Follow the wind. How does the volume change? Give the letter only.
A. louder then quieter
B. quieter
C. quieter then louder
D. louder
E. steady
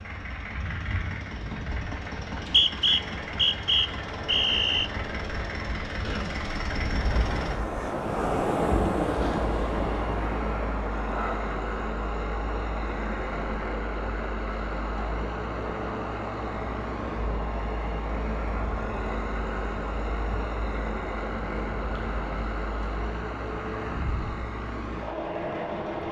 A.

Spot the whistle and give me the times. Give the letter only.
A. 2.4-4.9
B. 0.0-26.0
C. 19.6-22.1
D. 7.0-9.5
A.